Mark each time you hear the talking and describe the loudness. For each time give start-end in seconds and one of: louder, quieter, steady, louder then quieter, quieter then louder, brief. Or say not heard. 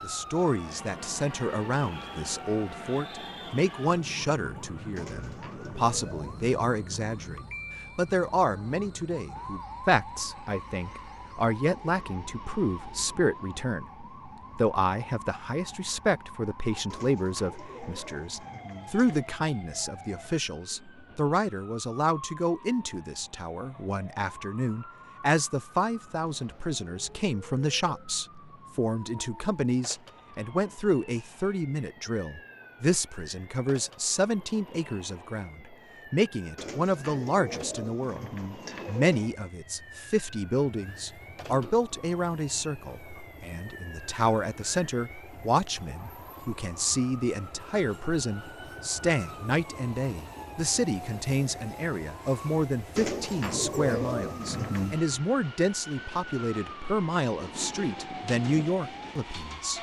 0.0-38.2 steady
38.9-59.7 steady.